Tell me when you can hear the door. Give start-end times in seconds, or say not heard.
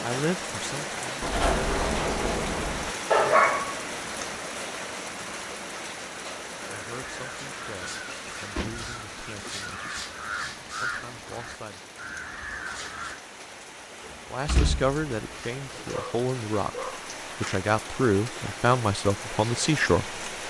1.2-3.0, 8.1-9.6, 14.1-15.9.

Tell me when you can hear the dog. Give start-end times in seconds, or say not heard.
3.1-4.3, 15.9-17.6.